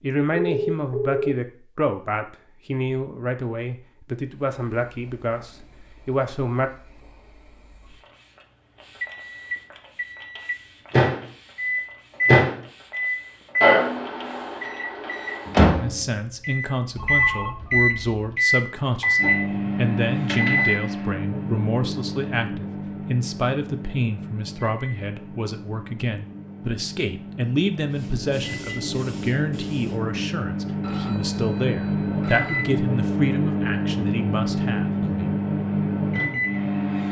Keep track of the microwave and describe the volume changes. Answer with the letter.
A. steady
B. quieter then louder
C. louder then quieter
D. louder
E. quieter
B.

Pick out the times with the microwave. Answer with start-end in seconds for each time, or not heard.
9.0-37.0.